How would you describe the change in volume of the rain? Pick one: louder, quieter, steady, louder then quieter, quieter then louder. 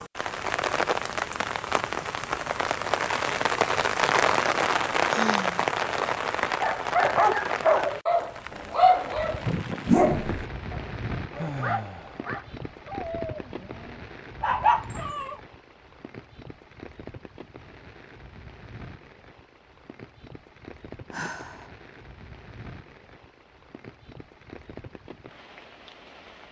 quieter.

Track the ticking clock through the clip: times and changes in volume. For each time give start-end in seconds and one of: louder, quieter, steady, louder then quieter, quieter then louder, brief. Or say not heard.
not heard.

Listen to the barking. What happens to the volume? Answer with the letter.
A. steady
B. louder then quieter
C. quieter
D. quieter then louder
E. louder
D.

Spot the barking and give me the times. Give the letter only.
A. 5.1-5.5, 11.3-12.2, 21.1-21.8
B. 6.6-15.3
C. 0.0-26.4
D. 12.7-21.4
B.